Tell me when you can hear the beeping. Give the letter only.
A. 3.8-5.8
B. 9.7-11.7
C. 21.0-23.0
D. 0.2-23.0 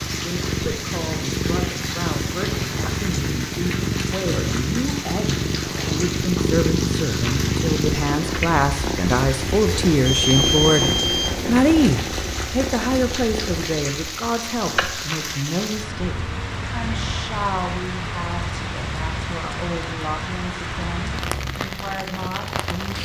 B.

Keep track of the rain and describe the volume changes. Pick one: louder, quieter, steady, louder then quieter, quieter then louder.
steady.